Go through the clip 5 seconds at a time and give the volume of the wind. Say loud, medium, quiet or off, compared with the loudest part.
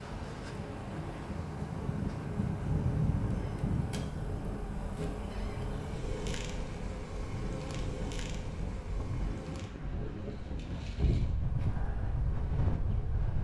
loud, medium, loud.